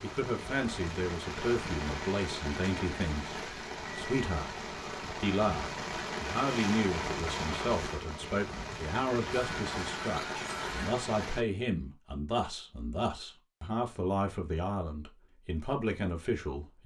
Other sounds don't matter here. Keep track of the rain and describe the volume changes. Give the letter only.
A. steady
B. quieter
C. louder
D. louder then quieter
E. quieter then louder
A.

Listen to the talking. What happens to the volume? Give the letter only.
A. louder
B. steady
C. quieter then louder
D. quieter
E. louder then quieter
B.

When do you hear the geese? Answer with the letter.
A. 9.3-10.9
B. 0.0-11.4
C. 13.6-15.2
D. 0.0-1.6
A.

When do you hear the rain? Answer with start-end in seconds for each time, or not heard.
0.0-11.4.